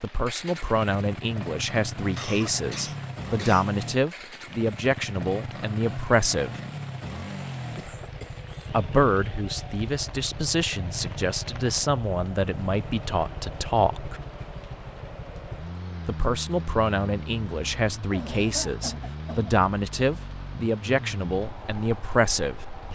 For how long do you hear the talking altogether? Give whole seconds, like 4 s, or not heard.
19 s.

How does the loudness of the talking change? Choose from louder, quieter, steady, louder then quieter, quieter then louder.
steady.